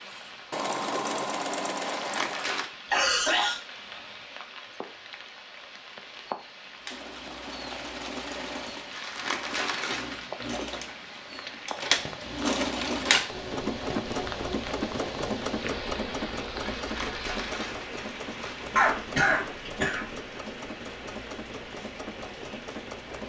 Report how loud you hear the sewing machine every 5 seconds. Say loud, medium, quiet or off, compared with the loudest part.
loud, medium, loud, medium, medium.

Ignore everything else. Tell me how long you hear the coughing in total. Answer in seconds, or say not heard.
2 s.